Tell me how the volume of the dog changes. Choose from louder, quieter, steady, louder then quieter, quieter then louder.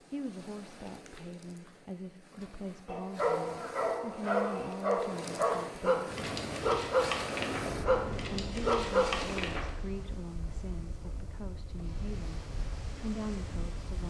steady.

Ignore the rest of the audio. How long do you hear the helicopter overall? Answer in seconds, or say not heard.
4 s.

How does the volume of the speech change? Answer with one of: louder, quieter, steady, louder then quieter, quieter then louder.
steady.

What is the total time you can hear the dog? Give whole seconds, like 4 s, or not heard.
7 s.